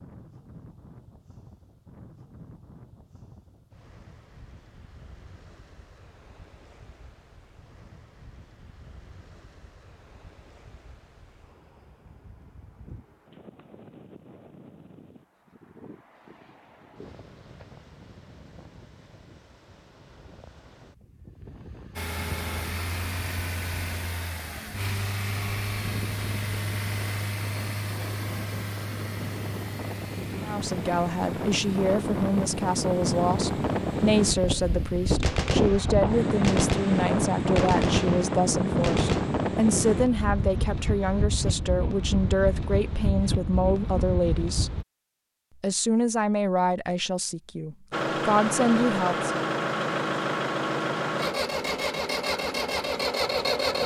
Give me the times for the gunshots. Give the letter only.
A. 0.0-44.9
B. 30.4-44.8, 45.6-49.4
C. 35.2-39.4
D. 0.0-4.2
C.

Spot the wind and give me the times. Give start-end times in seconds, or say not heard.
0.0-44.9.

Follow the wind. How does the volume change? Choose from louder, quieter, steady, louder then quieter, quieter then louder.
louder.